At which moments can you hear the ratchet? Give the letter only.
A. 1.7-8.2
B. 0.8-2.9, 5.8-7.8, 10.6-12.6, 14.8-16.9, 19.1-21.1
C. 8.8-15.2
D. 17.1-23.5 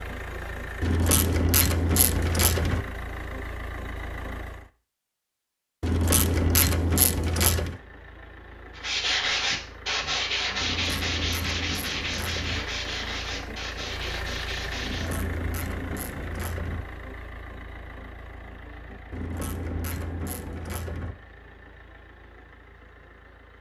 B.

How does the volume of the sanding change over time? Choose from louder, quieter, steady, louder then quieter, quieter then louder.
quieter.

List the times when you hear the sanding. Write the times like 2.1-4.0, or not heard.
8.8-15.2.